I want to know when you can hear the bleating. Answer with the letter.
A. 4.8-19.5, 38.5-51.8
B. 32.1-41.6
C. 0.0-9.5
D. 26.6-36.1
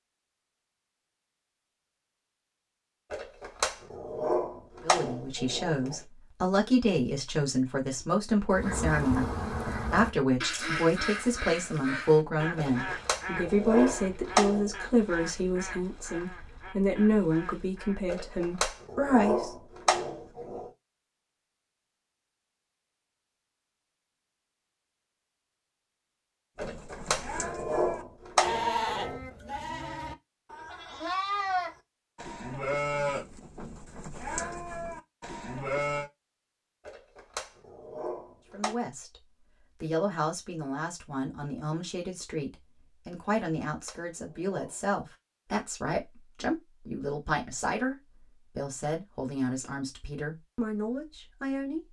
D.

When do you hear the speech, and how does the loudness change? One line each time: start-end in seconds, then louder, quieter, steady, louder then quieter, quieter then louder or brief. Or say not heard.
4.8-19.5 steady
38.5-51.8 steady.